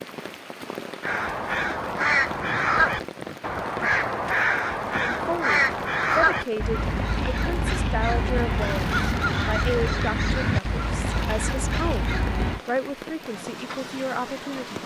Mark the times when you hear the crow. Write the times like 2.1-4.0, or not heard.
1.0-12.6.